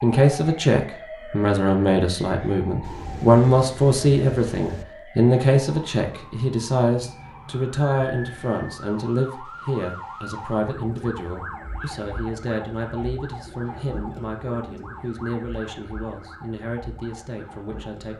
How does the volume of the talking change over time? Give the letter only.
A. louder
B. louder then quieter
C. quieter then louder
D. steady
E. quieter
E.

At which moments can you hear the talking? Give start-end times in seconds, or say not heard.
0.0-18.1.